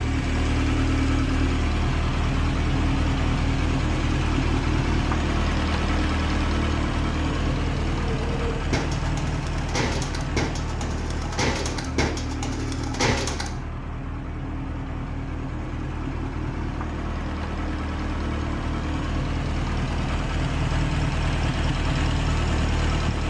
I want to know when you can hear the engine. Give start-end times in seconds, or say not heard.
0.0-23.2.